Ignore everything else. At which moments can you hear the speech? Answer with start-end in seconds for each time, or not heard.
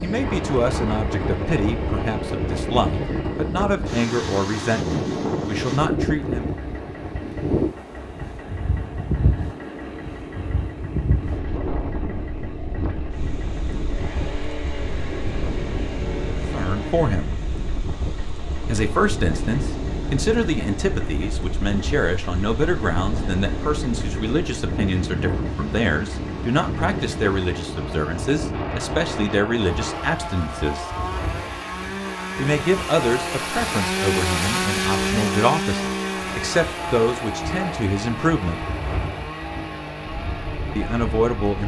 0.0-6.5, 16.5-17.4, 18.6-30.9, 32.4-38.6, 40.8-41.6.